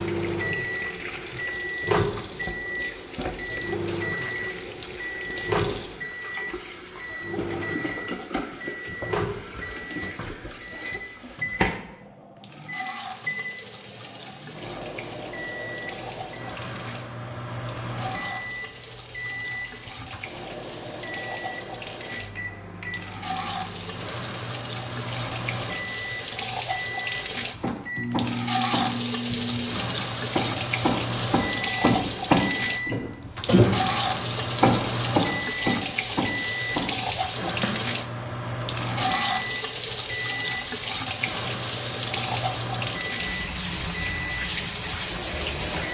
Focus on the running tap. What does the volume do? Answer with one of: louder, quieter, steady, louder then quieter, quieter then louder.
louder.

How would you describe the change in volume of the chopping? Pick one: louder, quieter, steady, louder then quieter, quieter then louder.
louder then quieter.